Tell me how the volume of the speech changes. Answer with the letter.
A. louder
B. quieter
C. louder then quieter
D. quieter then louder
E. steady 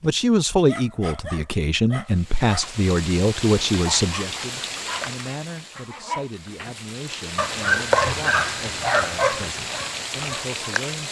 B.